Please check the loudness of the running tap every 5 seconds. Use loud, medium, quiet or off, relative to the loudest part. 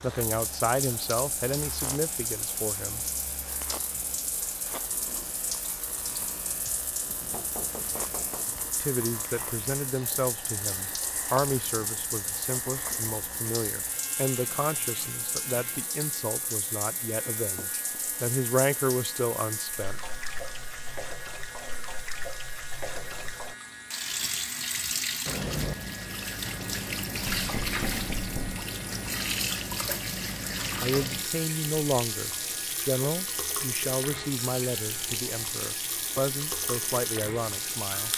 medium, medium, medium, medium, medium, loud, loud, loud.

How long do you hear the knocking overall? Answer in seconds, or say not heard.
4 s.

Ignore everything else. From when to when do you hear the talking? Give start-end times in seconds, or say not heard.
0.0-3.0, 8.8-20.0, 30.8-38.1.